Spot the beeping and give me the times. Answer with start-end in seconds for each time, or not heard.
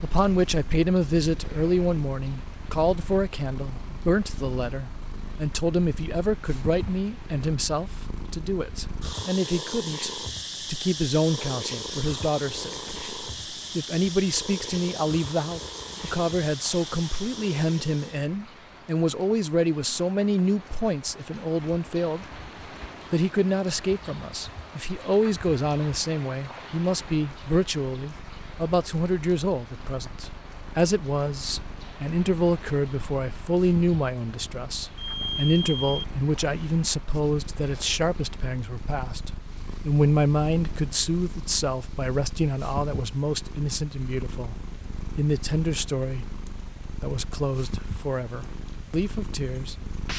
35.0-36.0.